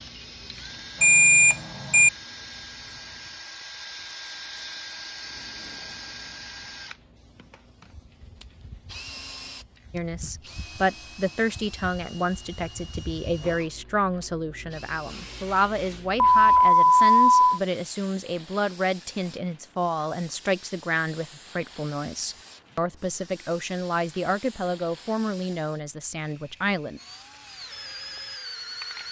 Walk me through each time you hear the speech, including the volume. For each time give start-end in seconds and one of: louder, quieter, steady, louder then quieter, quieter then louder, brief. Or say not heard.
9.9-27.0 steady.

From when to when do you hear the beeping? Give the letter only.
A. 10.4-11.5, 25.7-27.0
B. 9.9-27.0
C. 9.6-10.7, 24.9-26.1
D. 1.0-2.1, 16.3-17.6
D.